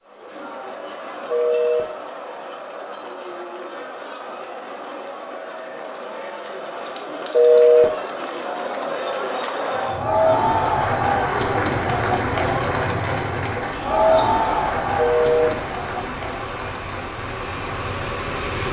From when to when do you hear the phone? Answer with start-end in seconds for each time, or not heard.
1.3-1.8, 7.3-7.8, 14.9-15.5.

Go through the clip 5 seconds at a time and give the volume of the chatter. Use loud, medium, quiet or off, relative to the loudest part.
quiet, medium, loud, medium.